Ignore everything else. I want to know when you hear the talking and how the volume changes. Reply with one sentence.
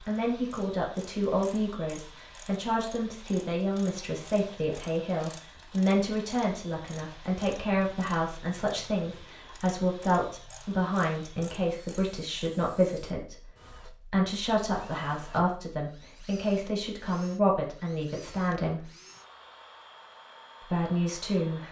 The talking can be heard from 0.0 to 18.9 s, at a steady volume; and briefly from 20.6 to 21.6 s.